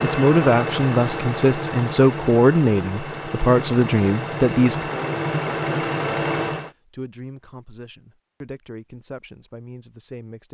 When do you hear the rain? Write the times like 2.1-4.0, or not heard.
not heard.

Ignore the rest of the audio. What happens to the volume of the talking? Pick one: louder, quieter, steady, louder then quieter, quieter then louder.
quieter.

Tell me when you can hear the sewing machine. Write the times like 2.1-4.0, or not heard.
0.0-6.7.